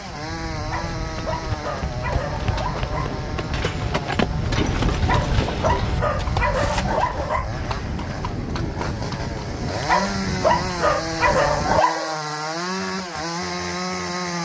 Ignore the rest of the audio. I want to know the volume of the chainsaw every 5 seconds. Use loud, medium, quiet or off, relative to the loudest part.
medium, medium, loud.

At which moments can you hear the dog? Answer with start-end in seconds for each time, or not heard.
0.6-3.2, 4.9-7.5, 9.7-12.2.